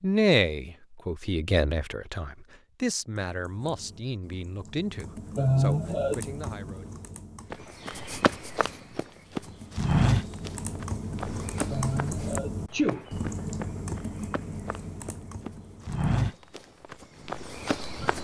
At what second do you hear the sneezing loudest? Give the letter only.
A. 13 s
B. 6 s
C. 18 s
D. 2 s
B.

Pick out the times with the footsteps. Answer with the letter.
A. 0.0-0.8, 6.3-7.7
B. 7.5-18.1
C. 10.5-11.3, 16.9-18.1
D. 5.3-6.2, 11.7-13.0
B.